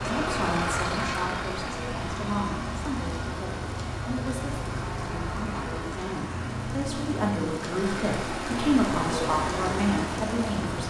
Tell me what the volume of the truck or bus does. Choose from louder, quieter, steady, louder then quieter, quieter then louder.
quieter.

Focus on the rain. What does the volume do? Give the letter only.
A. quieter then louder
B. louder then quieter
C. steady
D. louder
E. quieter
D.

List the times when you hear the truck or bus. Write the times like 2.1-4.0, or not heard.
0.0-10.8.